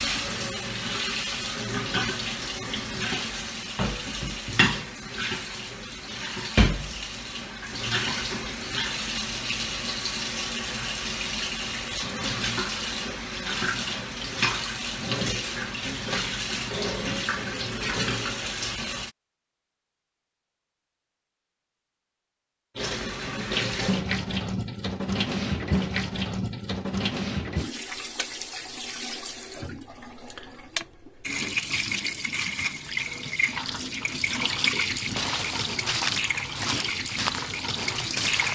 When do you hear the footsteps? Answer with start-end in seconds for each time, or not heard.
35.0-38.4.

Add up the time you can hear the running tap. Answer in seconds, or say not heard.
35 s.